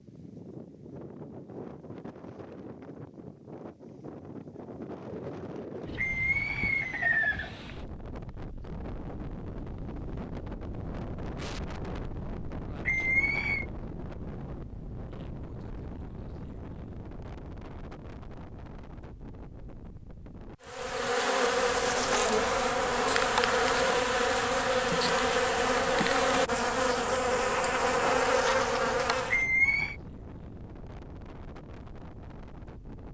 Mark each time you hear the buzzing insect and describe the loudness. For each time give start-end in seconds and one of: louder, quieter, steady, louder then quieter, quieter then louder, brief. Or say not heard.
20.6-29.4 steady.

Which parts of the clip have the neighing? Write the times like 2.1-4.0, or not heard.
6.0-7.7, 12.8-13.7, 29.3-29.9.